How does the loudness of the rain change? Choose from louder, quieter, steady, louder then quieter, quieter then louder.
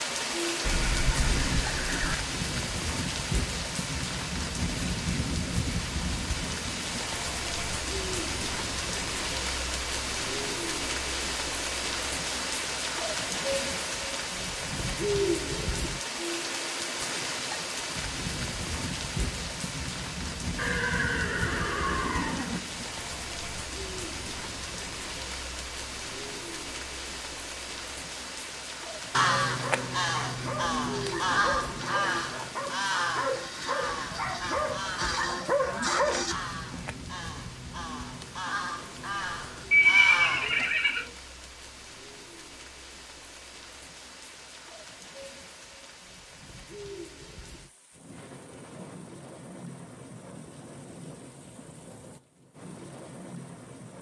quieter.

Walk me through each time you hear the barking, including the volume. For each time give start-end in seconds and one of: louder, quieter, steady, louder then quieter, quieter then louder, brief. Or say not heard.
29.4-36.8 louder.